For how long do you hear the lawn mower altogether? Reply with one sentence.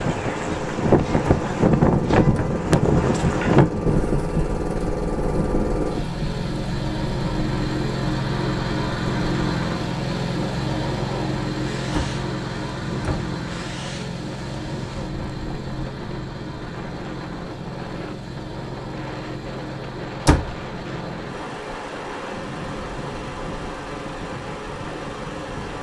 The lawn mower can be heard for 26 seconds in total.